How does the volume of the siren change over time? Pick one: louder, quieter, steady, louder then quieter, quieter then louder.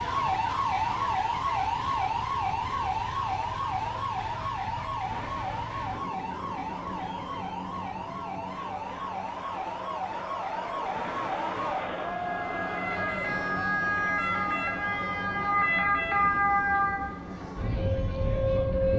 quieter then louder.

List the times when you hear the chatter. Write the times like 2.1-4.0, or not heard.
6.2-18.9.